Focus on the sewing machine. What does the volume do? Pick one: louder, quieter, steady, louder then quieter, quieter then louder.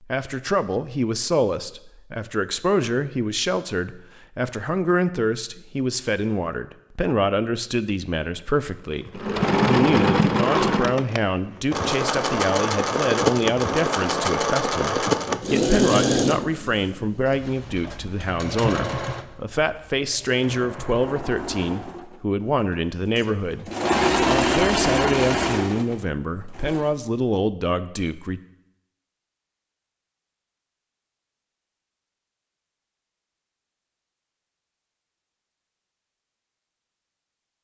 quieter then louder.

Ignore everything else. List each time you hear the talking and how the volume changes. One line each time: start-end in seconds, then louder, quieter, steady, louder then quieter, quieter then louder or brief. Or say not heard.
0.0-28.4 steady.